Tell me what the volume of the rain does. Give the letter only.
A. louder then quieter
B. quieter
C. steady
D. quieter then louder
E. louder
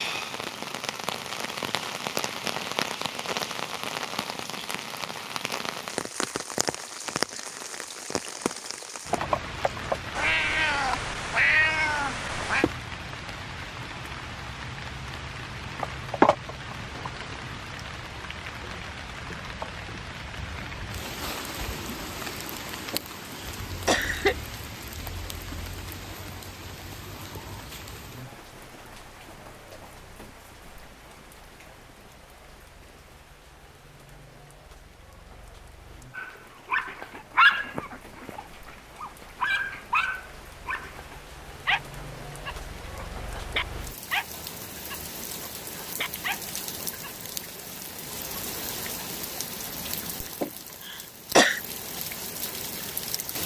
D.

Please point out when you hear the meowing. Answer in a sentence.
The meowing can be heard from 10.2 to 12.7 s.